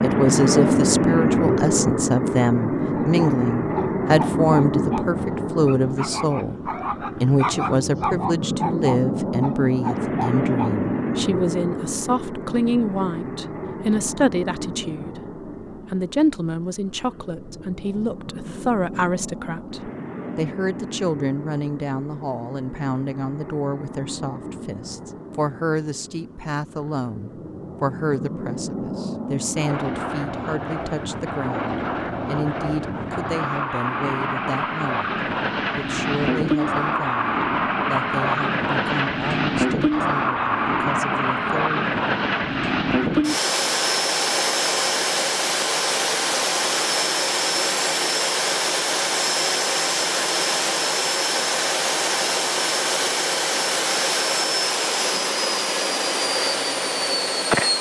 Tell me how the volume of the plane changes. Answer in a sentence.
The volume of the plane goes down, then up.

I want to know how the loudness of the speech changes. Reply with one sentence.
The loudness of the speech goes down.